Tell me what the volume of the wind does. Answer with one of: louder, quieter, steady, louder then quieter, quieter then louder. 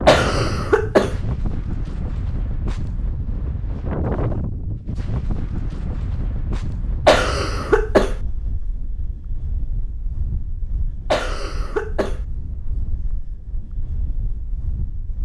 quieter.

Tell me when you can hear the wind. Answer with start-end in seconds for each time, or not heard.
0.0-15.2.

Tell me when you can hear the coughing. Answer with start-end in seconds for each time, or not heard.
0.1-1.2, 7.0-8.2, 11.1-12.2.